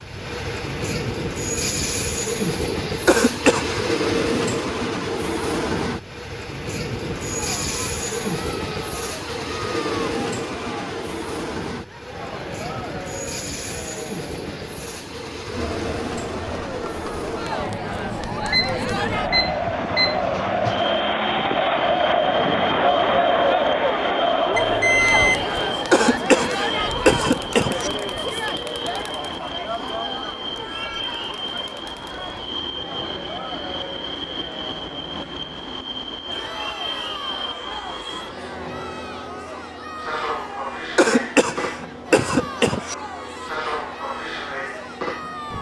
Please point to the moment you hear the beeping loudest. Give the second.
25 s.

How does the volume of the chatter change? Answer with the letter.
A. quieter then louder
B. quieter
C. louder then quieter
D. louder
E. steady
C.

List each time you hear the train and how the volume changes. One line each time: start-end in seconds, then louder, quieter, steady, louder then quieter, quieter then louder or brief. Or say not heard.
0.0-45.5 quieter.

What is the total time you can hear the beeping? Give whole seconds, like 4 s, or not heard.
3 s.